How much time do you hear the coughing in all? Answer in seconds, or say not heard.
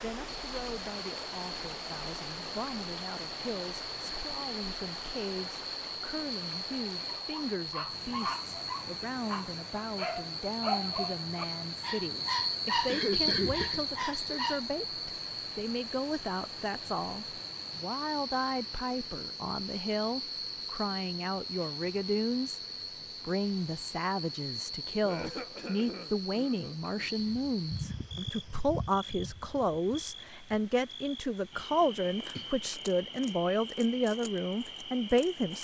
3 s.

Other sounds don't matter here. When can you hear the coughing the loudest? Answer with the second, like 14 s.
13 s.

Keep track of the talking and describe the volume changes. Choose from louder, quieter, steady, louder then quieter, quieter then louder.
louder.